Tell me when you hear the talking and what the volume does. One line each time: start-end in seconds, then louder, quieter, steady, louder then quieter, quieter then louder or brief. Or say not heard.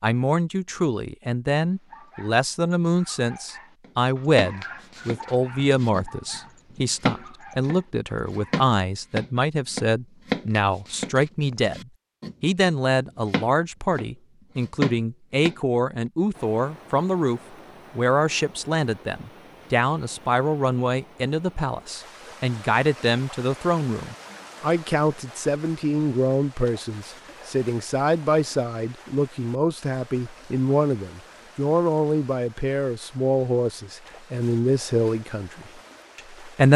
0.0-36.7 steady.